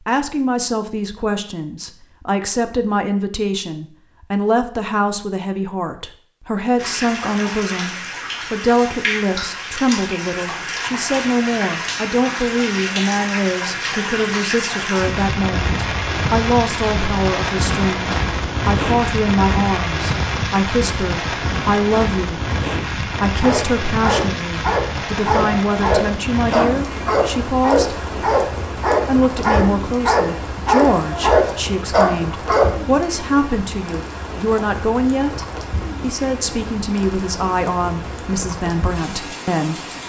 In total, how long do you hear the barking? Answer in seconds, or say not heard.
9 s.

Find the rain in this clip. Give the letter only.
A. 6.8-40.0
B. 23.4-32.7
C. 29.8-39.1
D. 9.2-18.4
A.